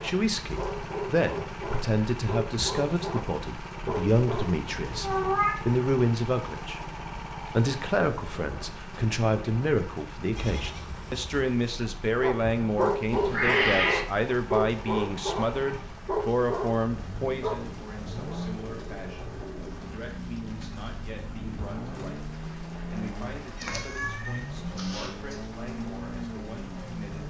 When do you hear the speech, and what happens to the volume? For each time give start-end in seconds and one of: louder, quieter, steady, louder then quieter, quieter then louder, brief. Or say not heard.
0.0-27.2 quieter.